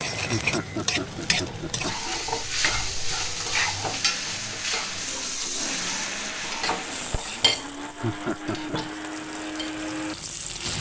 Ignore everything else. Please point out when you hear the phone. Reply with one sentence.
The phone can't be heard in this clip.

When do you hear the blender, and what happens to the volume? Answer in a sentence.
You can hear the blender from 0.1 to 10.7 s, getting louder.